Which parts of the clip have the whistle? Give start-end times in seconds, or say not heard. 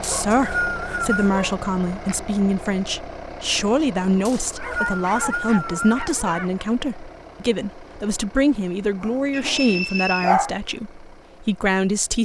0.0-1.4, 4.2-6.0, 9.3-10.3.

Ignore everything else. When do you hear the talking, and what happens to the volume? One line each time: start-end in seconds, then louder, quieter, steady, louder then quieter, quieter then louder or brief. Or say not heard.
0.0-12.2 steady.